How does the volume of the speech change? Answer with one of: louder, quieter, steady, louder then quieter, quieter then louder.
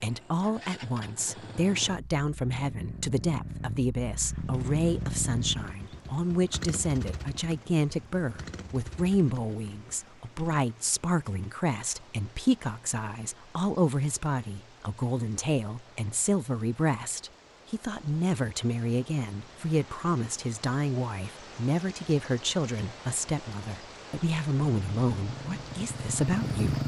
steady.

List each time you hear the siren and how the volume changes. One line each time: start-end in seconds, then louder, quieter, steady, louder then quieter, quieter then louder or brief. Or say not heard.
not heard.